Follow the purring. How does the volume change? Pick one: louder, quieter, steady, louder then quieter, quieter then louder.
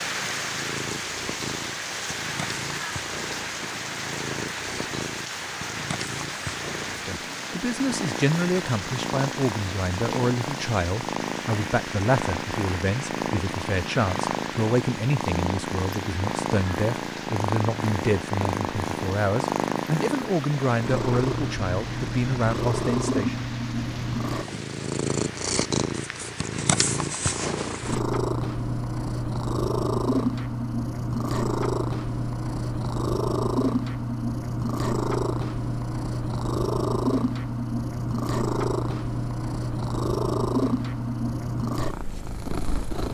louder.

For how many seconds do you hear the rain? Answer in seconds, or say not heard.
28 s.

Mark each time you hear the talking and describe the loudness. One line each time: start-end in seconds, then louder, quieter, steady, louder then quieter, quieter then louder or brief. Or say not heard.
7.0-23.4 steady.